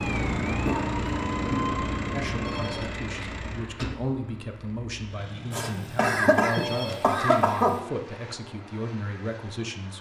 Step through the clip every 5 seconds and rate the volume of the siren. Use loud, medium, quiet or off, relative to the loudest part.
loud, off.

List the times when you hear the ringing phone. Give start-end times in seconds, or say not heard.
2.4-3.1, 6.5-7.4.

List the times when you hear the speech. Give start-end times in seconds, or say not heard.
2.1-9.9.